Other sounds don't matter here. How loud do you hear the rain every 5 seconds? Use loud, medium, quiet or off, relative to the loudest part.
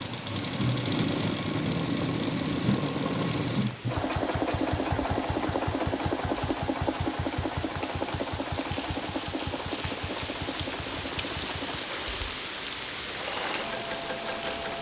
medium, medium, loud.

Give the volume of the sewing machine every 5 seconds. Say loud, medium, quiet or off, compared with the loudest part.
loud, loud, medium.